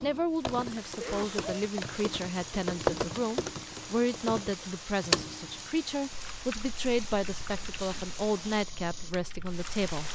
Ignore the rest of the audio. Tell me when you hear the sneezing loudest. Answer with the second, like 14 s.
1 s.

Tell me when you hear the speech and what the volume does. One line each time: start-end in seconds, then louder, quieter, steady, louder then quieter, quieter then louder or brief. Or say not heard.
0.0-10.1 steady.